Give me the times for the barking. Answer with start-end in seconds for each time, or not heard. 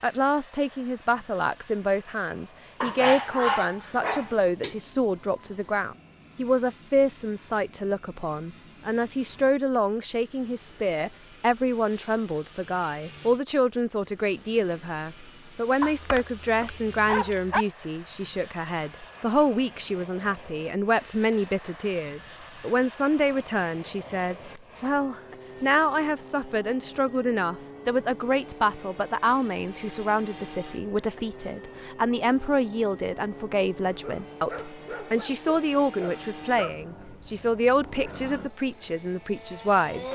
2.8-4.8, 15.8-17.6, 33.9-36.8.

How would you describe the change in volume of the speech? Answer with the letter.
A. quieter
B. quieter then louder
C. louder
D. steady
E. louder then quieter
D.